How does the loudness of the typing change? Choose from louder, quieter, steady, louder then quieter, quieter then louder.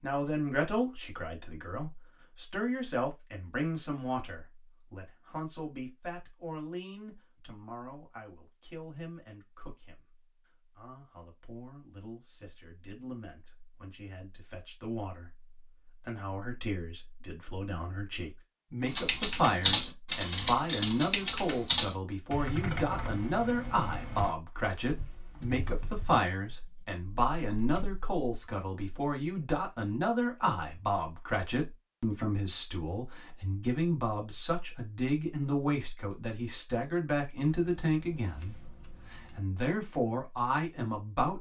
quieter.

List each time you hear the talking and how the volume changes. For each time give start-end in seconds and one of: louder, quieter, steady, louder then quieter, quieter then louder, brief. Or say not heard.
0.0-41.3 quieter then louder.